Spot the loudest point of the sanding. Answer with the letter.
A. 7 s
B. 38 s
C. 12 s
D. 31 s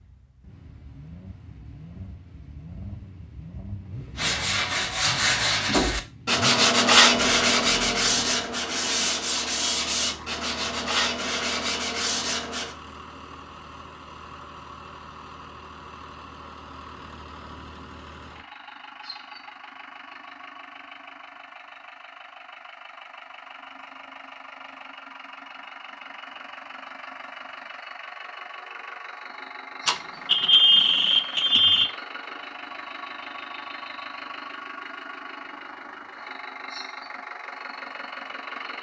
A.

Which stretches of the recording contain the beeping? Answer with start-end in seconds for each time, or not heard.
29.9-31.9.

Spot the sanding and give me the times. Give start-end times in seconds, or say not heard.
4.2-12.8.